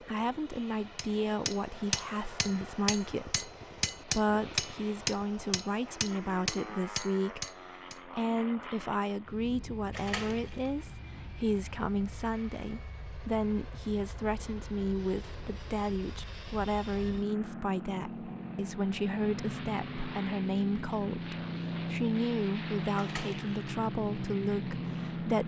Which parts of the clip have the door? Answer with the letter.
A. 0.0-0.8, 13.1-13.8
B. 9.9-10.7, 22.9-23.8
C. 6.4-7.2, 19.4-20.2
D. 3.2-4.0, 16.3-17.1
B.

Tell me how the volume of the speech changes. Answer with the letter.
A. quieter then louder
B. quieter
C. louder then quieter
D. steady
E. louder
D.